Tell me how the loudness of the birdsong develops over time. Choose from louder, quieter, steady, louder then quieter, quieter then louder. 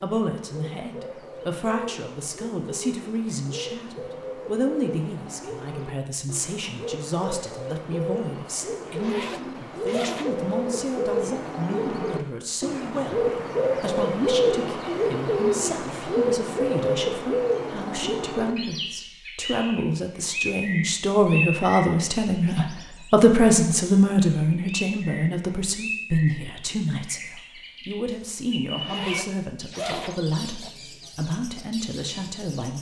louder then quieter.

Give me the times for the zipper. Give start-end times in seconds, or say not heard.
8.8-10.3, 28.7-30.7.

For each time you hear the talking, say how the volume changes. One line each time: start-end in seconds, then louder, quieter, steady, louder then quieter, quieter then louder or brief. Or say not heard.
0.0-32.7 louder then quieter.